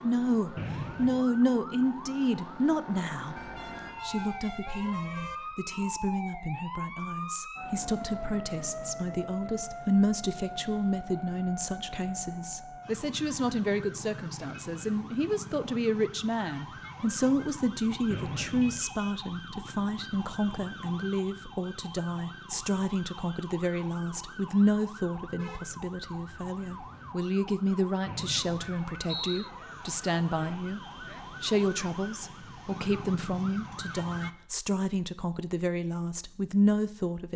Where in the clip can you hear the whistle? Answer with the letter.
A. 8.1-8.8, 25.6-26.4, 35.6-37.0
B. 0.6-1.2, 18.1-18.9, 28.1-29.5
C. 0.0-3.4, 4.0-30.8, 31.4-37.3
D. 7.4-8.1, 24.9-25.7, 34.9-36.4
B.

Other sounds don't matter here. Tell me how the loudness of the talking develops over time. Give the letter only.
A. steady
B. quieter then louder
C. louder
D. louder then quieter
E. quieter
A.